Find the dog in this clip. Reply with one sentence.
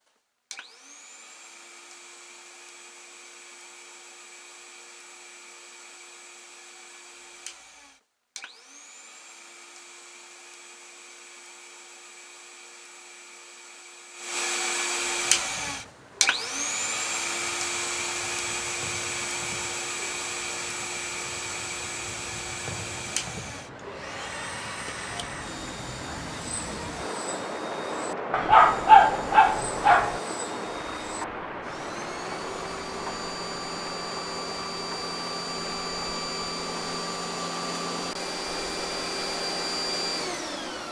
The dog can be heard from 28.3 to 30.1 s.